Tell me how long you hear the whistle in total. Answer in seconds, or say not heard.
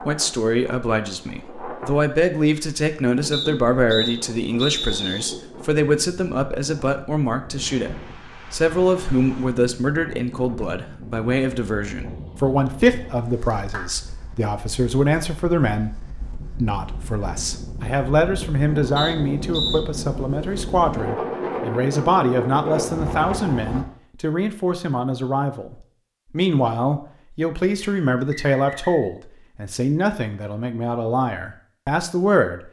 4 s.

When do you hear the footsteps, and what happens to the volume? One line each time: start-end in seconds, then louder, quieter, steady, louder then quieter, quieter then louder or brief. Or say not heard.
not heard.